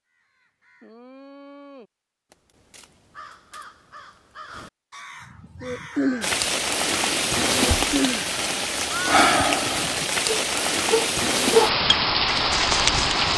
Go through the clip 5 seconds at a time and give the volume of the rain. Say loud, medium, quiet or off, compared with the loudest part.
off, loud, loud.